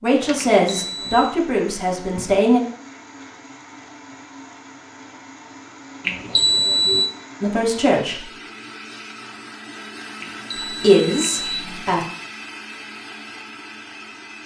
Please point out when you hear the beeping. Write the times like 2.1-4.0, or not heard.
0.3-1.4, 6.0-7.1, 10.2-11.8.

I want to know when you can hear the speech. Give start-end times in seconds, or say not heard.
0.0-2.6, 7.4-8.3, 10.7-12.1.